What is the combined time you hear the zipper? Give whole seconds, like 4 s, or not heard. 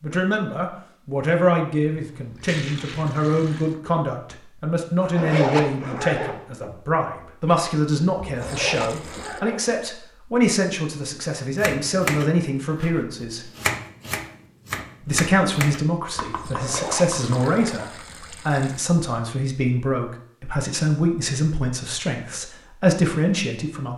4 s.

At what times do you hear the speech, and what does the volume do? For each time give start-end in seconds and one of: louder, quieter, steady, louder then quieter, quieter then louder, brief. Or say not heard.
0.0-13.4 steady
15.1-23.9 steady.